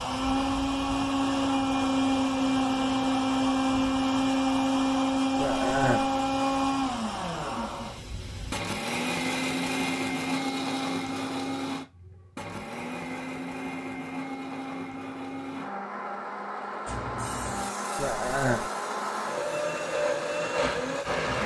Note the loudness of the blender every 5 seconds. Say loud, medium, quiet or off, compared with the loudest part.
loud, loud, medium, medium, loud.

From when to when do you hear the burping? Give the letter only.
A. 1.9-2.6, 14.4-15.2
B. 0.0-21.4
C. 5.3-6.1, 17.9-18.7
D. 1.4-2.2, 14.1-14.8
C.